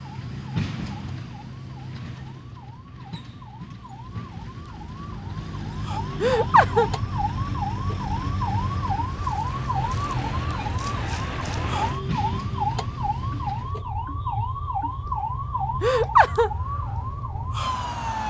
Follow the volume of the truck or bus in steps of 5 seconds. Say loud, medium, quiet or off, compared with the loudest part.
loud, loud, loud, off.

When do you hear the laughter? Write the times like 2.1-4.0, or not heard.
6.2-6.9, 15.8-16.5.